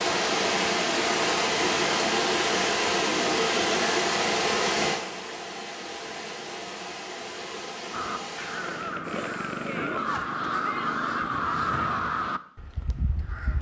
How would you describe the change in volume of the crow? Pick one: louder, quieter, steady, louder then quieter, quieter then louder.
louder then quieter.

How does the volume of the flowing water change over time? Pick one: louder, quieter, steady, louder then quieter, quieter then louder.
quieter.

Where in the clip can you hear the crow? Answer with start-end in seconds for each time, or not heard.
7.9-13.5.